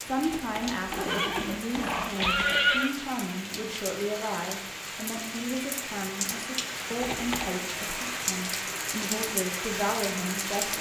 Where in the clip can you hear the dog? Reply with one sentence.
The dog can't be heard in this clip.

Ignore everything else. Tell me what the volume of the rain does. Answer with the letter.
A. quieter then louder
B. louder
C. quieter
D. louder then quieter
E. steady
B.